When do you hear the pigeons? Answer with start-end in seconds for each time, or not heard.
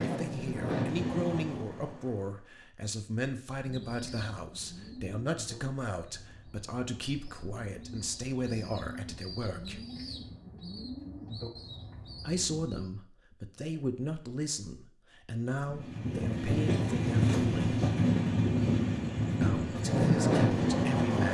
3.6-12.9.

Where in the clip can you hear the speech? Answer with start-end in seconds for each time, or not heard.
0.0-9.8, 12.2-17.8, 19.4-21.3.